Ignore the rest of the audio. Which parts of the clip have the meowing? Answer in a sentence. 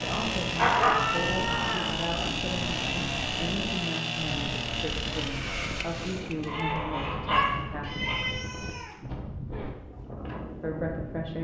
The meowing can be heard from 0.8 to 1.9 s and from 7.8 to 9.0 s.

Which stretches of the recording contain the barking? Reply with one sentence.
You can hear the barking from 0.6 to 2.5 s and from 6.4 to 8.2 s.